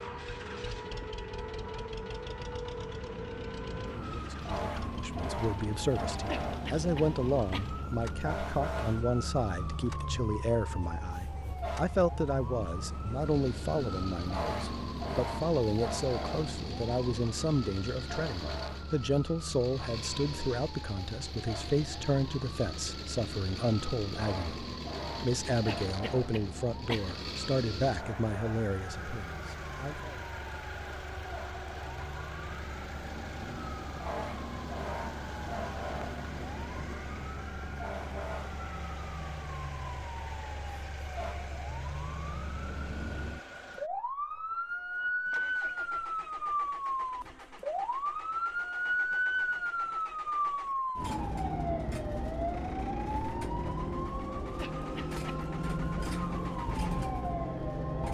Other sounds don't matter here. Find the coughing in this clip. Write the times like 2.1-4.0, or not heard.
6.2-7.7, 25.6-27.1, 54.5-55.5.